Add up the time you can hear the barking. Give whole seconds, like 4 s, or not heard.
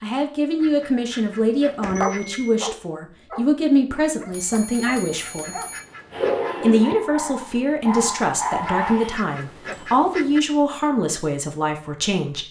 7 s.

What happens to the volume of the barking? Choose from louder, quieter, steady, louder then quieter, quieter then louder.
quieter then louder.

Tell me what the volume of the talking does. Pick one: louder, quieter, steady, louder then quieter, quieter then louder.
steady.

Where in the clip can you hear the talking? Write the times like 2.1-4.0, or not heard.
0.0-5.5, 6.6-12.4.